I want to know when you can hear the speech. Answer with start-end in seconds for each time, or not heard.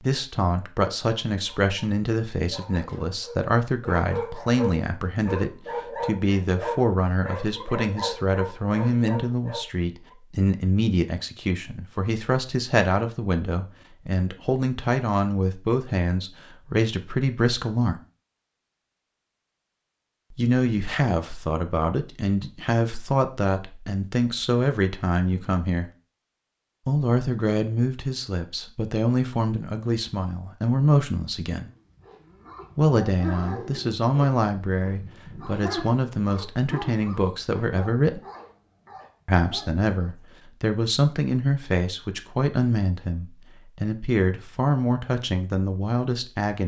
0.0-18.0, 20.3-25.9, 26.9-31.7, 32.8-38.2, 39.2-46.6.